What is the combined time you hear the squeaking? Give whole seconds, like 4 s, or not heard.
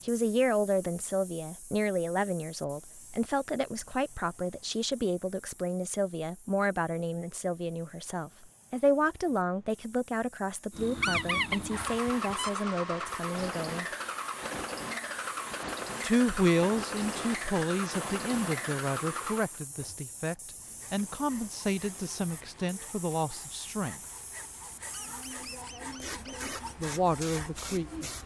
3 s.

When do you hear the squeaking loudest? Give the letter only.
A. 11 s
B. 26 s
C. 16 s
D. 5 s
A.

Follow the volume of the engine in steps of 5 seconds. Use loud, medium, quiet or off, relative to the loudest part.
off, off, loud, loud, quiet, quiet.